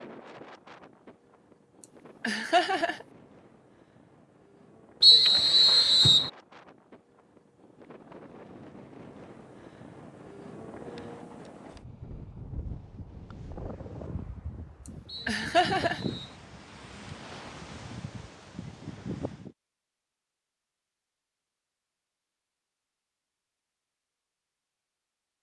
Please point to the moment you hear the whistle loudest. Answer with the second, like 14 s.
5 s.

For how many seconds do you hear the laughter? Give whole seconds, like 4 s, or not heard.
2 s.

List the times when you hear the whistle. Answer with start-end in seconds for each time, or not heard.
5.0-6.3, 15.1-16.4.